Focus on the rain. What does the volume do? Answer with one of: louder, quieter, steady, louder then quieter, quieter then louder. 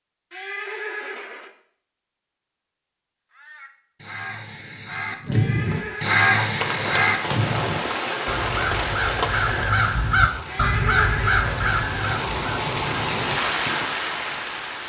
quieter then louder.